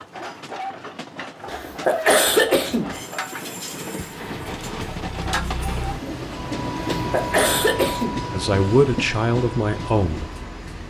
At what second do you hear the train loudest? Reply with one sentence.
The volume of the train peaks at 7 seconds.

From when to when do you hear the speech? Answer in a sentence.
You can hear the speech from 8.3 to 10.3 s.